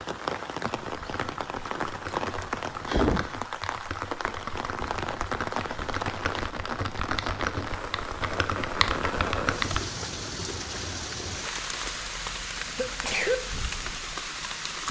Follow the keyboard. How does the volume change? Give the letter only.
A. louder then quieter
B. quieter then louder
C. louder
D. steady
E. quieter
C.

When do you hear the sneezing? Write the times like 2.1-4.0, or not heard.
12.6-13.3.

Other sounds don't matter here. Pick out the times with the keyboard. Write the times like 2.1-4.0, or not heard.
0.8-9.8.